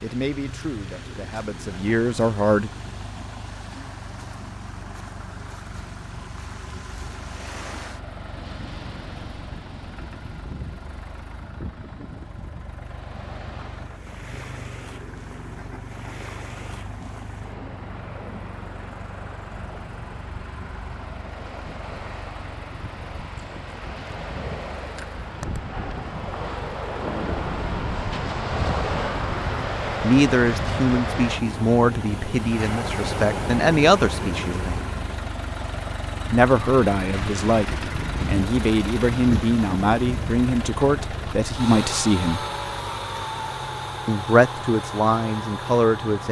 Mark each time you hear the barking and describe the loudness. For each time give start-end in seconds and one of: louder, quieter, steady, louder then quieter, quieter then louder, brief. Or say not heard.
not heard.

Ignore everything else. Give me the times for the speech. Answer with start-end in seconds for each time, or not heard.
0.0-2.7, 30.0-34.9, 36.3-42.4, 44.0-46.2.